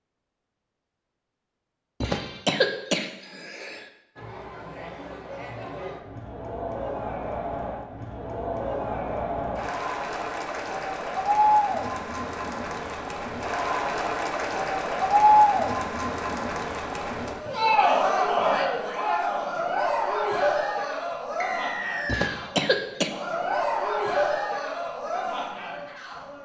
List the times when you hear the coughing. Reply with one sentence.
You can hear the coughing from 2.0 to 3.9 s and from 22.1 to 23.1 s.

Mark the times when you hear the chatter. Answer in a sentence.
The chatter can be heard from 4.2 to 26.4 s.